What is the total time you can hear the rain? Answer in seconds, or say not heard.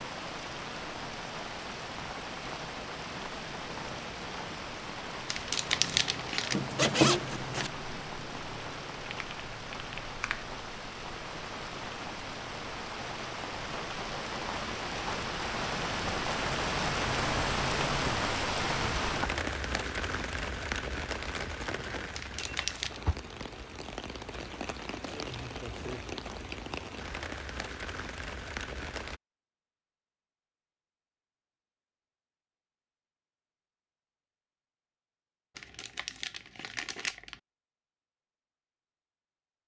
29 s.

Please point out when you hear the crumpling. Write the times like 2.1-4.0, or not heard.
5.2-6.6, 22.1-23.0, 35.5-37.4.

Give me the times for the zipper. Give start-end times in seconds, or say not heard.
6.5-7.7.